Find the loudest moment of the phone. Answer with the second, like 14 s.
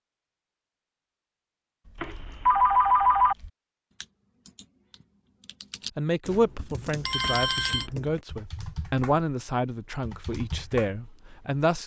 3 s.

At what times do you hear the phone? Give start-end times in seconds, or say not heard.
2.0-3.4, 7.0-7.8.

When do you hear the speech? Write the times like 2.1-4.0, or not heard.
6.0-11.8.